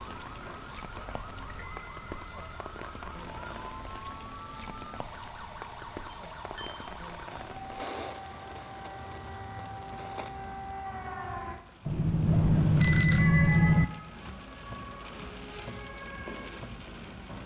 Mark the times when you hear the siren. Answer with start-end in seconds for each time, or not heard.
0.0-11.6, 13.1-17.4.